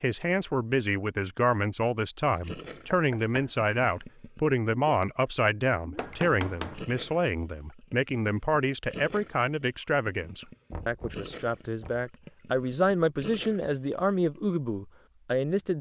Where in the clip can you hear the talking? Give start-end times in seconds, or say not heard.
0.0-15.7.